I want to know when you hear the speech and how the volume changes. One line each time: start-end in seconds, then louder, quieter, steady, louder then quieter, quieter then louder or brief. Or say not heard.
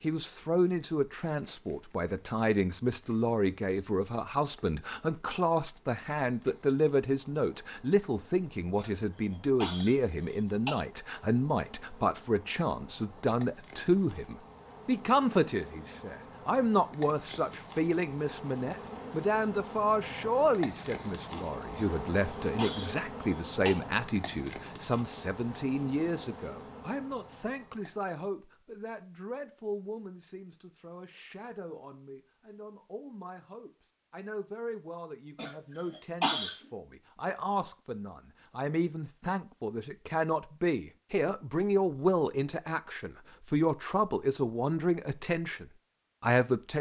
0.0-46.7 quieter then louder.